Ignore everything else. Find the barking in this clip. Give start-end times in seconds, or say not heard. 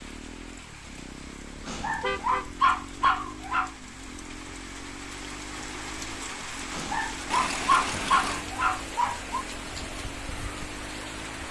1.6-3.7, 6.7-9.4.